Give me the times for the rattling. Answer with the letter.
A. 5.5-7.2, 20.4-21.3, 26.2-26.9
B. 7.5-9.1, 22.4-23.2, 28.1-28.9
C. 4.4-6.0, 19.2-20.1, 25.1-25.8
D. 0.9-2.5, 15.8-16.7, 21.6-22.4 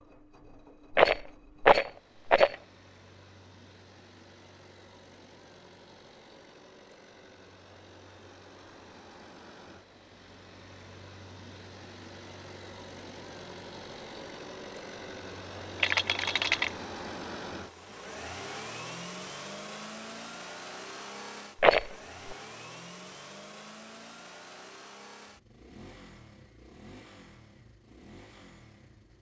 D.